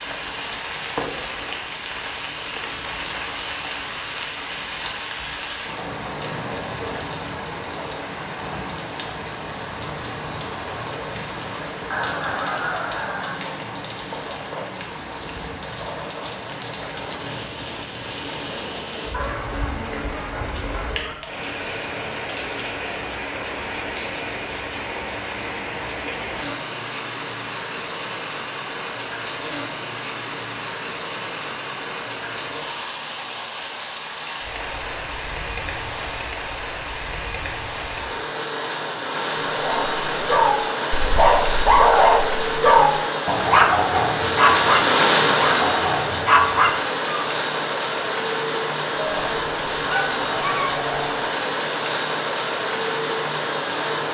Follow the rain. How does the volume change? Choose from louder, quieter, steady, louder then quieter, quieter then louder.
louder.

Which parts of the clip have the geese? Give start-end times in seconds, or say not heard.
11.9-13.4, 19.1-21.1, 49.0-51.2.